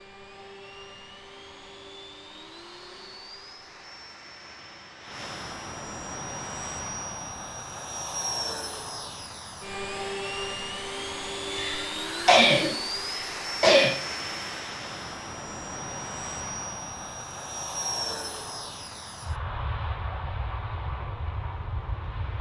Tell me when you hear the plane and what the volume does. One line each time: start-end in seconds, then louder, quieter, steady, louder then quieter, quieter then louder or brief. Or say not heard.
0.0-22.3 louder.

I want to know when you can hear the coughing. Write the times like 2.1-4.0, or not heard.
11.5-13.9.